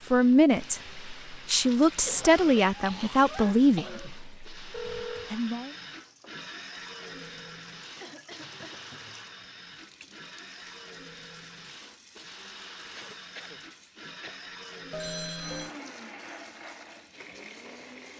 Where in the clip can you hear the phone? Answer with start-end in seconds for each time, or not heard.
4.7-5.3, 14.9-15.8.